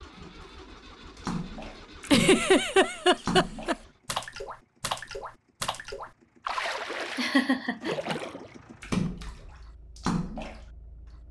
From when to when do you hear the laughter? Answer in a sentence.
You can hear the laughter from 2.0 to 3.8 s and from 7.2 to 8.0 s.